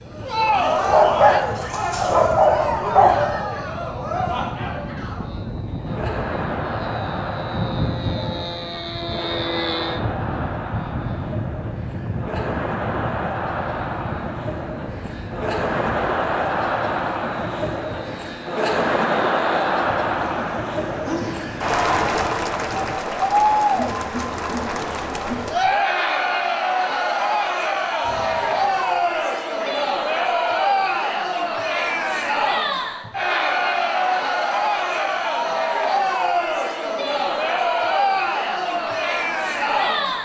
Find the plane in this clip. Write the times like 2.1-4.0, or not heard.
0.0-23.0.